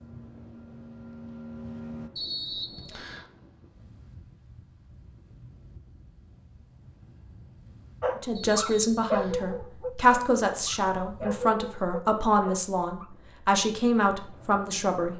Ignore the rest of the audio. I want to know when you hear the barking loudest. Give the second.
9 s.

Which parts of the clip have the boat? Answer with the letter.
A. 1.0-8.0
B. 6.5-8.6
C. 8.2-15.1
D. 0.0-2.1
D.